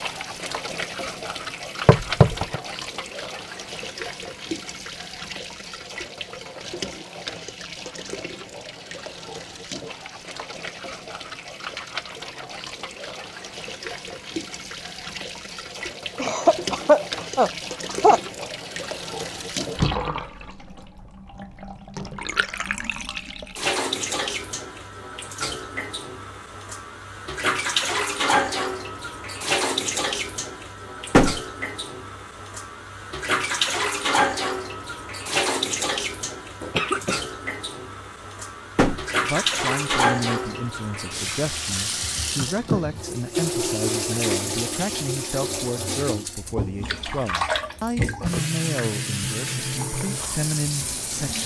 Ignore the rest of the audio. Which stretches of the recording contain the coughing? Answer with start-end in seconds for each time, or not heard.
16.1-18.4, 36.6-37.2.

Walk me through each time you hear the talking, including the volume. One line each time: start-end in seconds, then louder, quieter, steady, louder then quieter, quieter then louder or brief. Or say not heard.
39.1-51.4 steady.